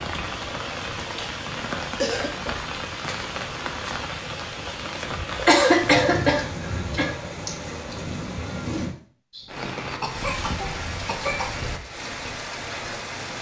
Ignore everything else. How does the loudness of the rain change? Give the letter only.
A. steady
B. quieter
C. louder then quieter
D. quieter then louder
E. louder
A.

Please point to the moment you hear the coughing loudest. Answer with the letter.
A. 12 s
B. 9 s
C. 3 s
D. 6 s
D.